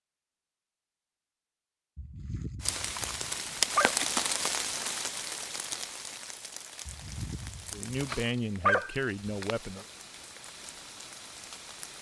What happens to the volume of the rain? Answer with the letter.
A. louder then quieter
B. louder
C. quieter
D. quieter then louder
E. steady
C.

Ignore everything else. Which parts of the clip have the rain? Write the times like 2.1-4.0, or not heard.
2.6-11.9.